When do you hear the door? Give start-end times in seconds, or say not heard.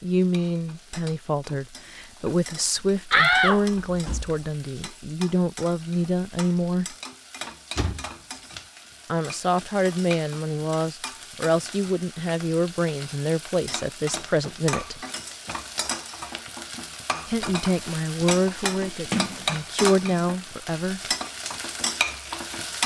3.1-4.3, 7.8-8.6, 19.1-20.2.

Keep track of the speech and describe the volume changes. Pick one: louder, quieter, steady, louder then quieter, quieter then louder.
steady.